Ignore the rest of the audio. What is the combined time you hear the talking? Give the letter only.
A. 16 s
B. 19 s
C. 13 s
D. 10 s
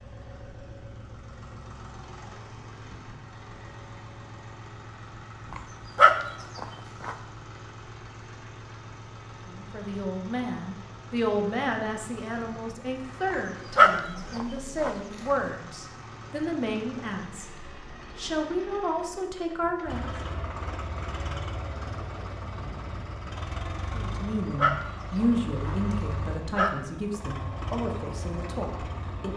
A.